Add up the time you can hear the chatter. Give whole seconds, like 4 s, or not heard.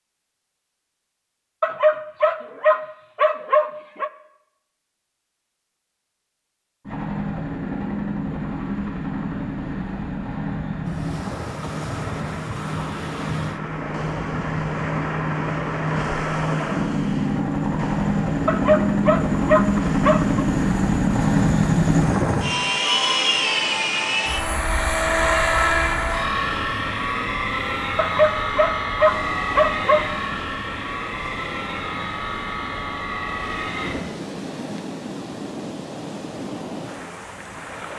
not heard.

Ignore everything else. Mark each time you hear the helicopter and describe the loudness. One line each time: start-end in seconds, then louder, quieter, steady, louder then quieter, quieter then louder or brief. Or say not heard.
6.8-34.0 louder then quieter.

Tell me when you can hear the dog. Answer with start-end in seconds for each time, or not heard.
1.6-4.1, 18.4-20.4, 27.9-30.1.